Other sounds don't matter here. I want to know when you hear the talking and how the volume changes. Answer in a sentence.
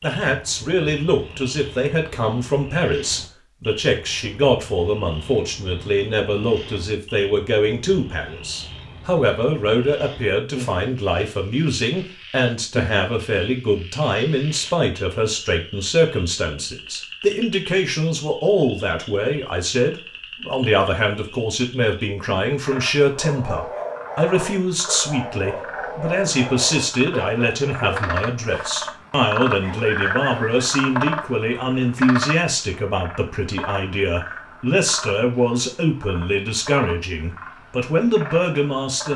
You can hear the talking from 0.0 to 39.1 s, at a steady volume.